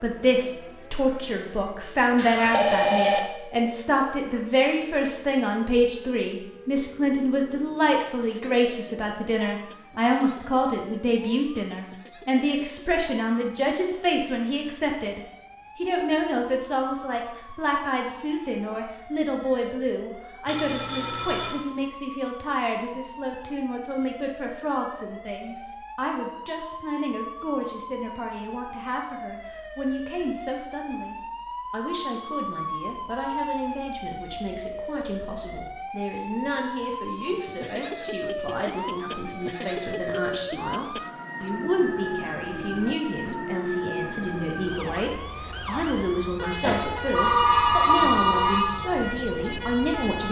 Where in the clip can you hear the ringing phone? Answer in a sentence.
The ringing phone can be heard from 2.1 to 3.2 s, from 20.4 to 21.6 s and from 46.6 to 48.6 s.